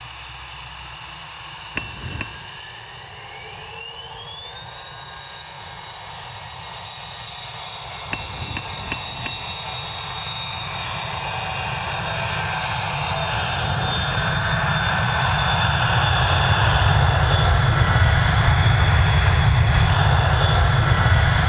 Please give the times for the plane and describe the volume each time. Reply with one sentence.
The plane can be heard from 0.0 to 21.4 s, getting louder.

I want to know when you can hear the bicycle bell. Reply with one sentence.
You can hear the bicycle bell from 1.8 to 2.5 s, from 8.1 to 9.6 s and from 16.9 to 17.6 s.